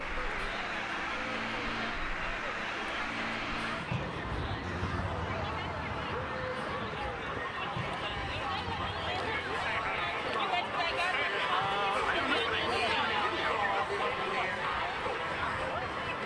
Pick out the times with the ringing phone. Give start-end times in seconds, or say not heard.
not heard.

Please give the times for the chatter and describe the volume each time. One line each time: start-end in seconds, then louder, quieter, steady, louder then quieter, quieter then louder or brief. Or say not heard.
0.0-16.2 louder.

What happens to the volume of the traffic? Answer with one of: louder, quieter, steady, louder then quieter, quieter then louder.
quieter.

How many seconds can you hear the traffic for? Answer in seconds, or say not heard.
16 s.